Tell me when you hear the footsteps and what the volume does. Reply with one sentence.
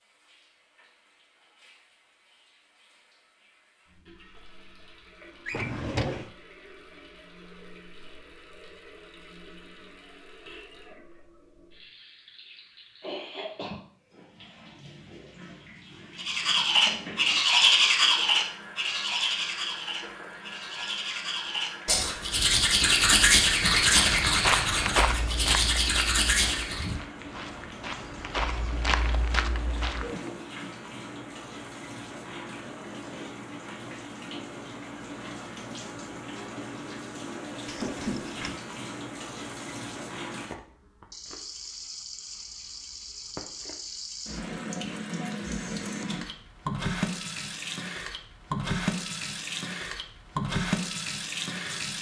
You can hear the footsteps from 23.8 to 30.1 s, getting quieter then louder.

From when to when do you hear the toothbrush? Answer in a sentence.
The toothbrush can be heard from 16.1 to 26.9 s.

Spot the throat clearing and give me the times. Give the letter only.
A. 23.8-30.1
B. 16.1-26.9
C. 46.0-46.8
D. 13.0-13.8
D.